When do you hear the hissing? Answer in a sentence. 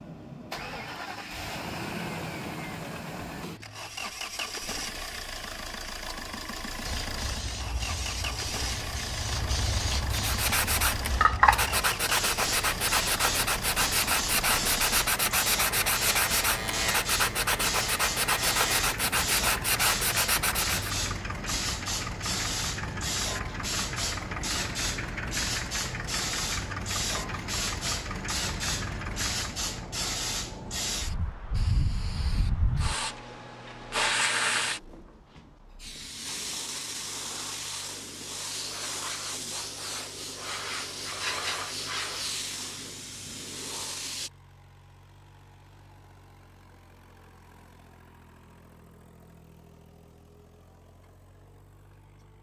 The hissing can be heard from 6.8 to 44.3 s.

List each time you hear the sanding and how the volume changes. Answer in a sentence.
The sanding can be heard from 10.1 to 21.0 s, at a steady volume.